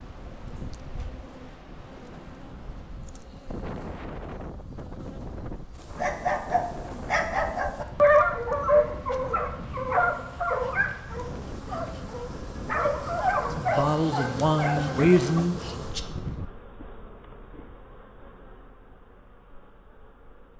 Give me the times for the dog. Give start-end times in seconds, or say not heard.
5.7-15.4.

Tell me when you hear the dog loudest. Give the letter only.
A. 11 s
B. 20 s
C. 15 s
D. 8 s
D.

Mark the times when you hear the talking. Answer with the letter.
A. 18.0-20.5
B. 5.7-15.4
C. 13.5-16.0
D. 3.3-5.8
C.